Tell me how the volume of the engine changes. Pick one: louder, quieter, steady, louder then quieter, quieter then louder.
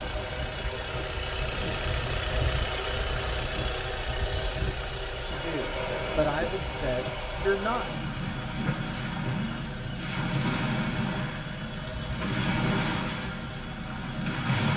quieter.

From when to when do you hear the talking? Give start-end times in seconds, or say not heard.
5.2-7.8.